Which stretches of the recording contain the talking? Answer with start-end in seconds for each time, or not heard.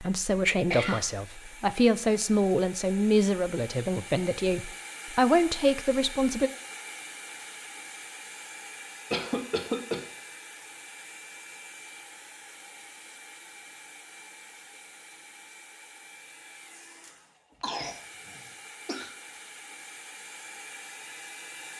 0.0-6.5.